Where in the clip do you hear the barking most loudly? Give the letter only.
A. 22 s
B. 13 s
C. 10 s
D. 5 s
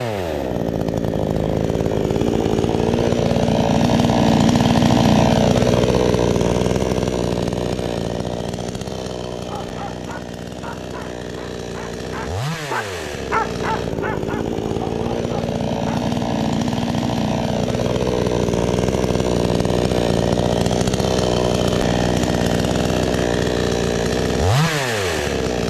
B.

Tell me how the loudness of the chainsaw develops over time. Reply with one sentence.
The volume of the chainsaw goes down, then up.